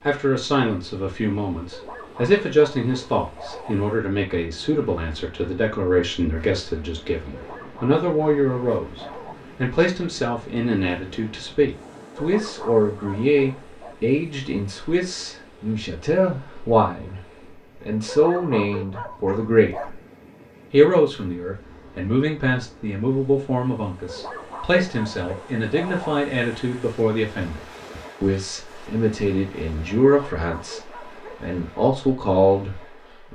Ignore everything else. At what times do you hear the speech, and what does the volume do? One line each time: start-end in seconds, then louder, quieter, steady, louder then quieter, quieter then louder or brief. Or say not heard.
0.1-17.2 steady
17.8-19.9 brief
20.7-33.3 steady.